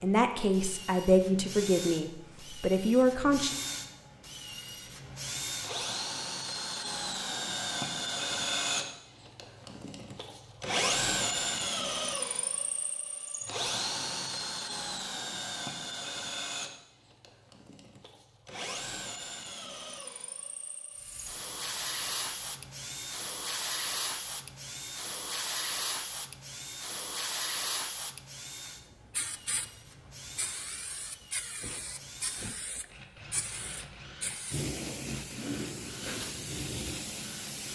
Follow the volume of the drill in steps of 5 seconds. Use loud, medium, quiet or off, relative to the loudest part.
medium, loud, loud, medium, quiet, quiet, quiet, quiet.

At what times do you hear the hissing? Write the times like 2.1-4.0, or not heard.
20.9-37.7.